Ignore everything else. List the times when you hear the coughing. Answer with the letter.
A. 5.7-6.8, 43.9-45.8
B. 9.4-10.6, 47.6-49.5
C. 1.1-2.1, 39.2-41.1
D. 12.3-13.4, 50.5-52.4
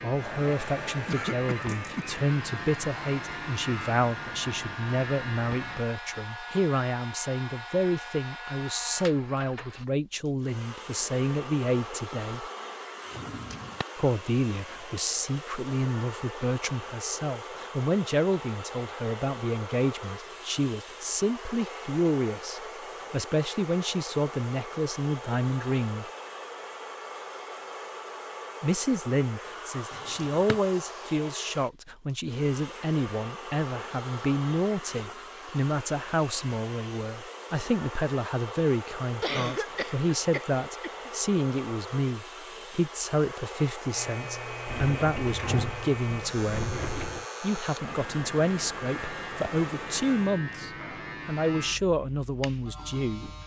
C.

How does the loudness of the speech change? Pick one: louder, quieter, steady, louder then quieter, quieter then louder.
steady.